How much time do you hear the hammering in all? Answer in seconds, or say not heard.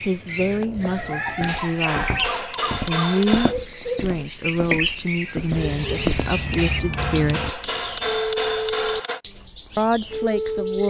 5 s.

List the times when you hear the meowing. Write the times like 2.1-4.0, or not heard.
0.3-1.3, 5.5-7.5.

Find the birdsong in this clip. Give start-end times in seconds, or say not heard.
0.0-10.8.